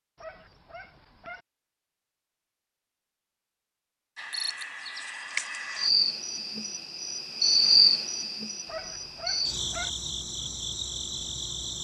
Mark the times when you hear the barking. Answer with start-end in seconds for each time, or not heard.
0.1-1.4, 8.7-9.9.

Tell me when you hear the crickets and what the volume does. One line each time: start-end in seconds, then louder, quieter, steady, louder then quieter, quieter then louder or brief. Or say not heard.
4.2-11.7 louder then quieter.